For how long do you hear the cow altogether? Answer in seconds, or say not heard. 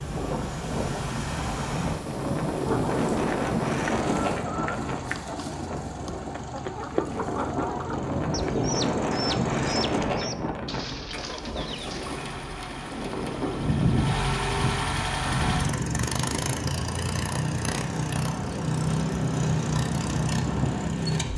not heard.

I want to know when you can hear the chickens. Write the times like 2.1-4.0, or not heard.
2.6-12.2.